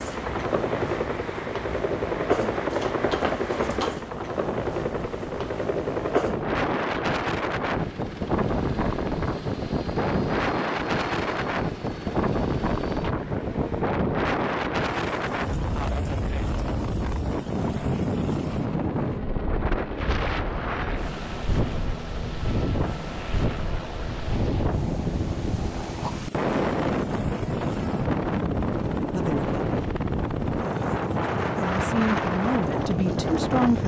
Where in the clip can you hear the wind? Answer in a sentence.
You can hear the wind from 0.0 to 33.8 s.